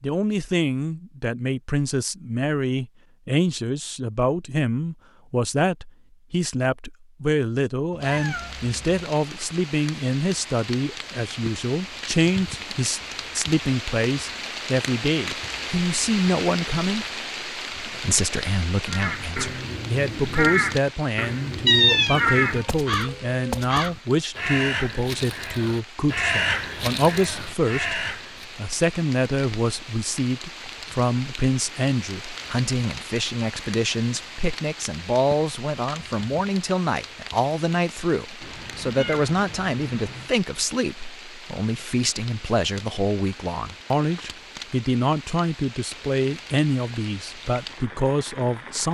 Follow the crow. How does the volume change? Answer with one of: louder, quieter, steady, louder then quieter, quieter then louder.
steady.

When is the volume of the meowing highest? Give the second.
22 s.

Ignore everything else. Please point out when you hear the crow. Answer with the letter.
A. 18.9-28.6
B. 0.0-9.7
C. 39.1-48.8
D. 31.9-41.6
A.